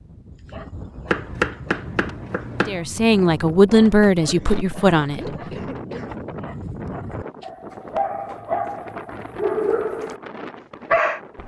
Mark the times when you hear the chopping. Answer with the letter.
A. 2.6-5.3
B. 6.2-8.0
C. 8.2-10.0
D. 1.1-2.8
D.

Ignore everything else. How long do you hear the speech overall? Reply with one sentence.
The speech can be heard for 3 seconds in total.